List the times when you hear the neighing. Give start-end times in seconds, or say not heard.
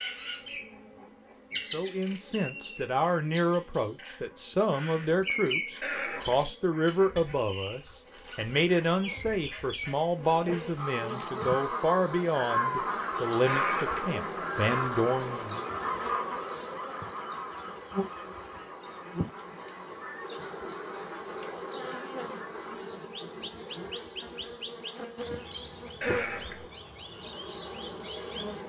5.8-6.5, 13.4-14.0, 26.0-26.6.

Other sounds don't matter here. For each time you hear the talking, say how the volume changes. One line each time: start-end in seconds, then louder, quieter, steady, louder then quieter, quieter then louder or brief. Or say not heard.
1.7-15.7 steady.